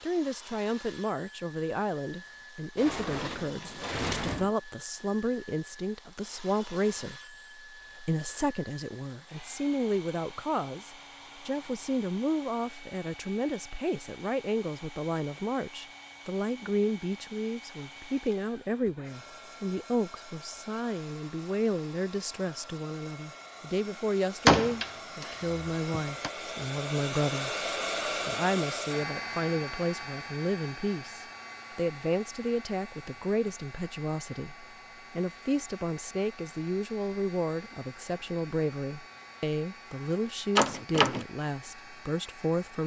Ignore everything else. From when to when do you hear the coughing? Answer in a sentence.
You can't hear the coughing here.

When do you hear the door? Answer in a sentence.
The door can be heard from 2.8 to 4.5 s, from 24.4 to 26.3 s and from 40.5 to 41.2 s.